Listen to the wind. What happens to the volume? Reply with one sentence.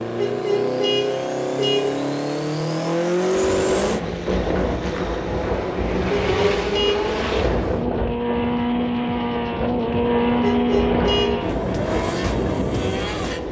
The loudness of the wind stays about the same.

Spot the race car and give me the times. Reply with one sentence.
You can hear the race car from 0.0 to 13.4 s.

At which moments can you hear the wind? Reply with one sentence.
You can hear the wind from 3.4 to 13.4 s.